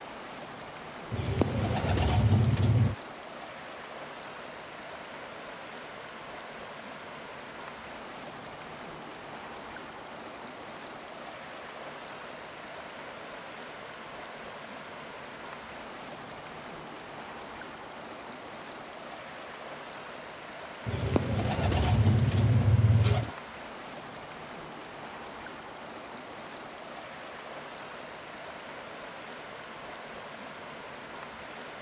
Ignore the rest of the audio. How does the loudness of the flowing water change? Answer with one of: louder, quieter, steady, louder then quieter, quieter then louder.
steady.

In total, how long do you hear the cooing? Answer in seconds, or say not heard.
4 s.